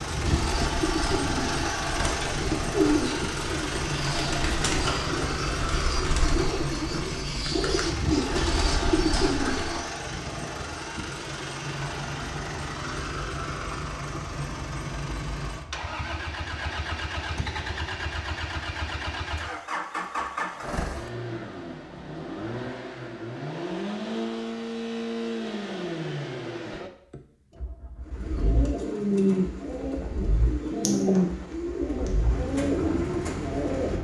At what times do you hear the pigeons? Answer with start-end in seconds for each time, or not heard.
0.0-9.8, 28.1-33.9.